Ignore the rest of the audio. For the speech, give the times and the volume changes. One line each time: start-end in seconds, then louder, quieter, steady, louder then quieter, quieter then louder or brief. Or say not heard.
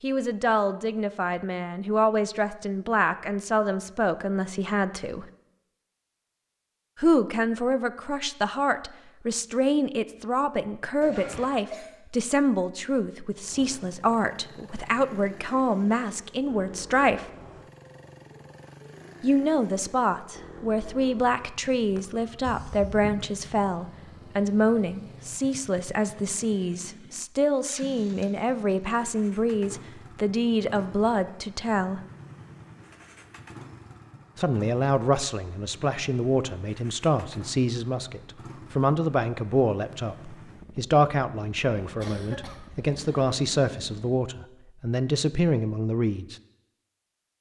0.0-5.2 steady
7.0-17.2 steady
19.2-32.0 steady
34.4-46.4 steady.